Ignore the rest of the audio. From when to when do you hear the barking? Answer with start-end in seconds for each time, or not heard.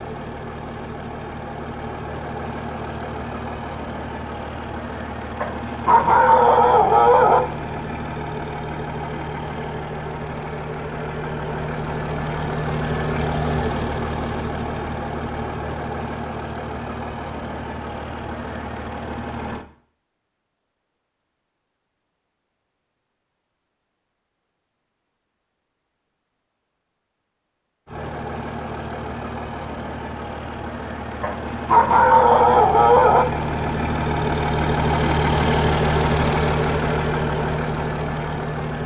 5.4-7.4, 31.2-33.2.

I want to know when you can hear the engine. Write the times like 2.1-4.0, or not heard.
0.0-19.6, 27.9-38.8.